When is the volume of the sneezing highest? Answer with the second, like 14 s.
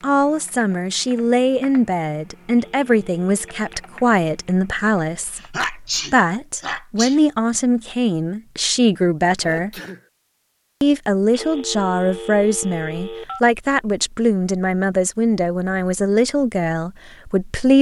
6 s.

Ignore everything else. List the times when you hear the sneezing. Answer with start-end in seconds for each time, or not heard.
5.2-7.2, 9.4-10.1.